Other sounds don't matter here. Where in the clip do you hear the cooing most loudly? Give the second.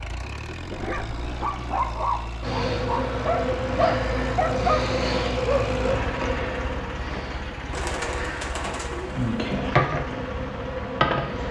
8 s.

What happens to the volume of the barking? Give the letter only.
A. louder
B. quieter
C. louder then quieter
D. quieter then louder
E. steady
A.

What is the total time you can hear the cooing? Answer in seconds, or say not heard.
2 s.